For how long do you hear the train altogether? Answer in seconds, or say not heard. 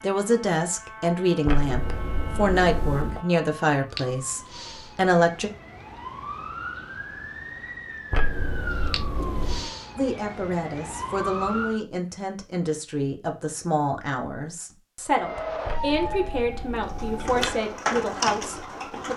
not heard.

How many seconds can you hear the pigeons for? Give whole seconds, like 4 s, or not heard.
2 s.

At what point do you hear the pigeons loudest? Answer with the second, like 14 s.
18 s.